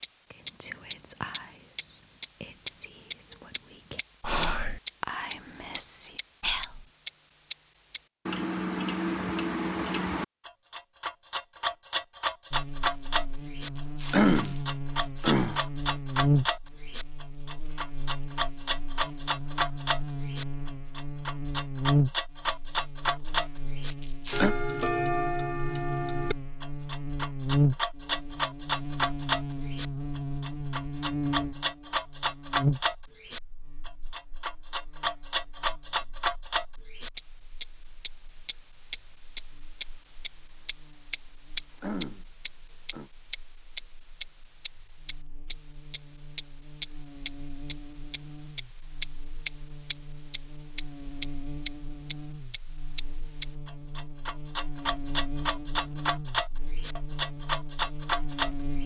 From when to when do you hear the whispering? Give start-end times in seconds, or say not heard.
0.3-6.8.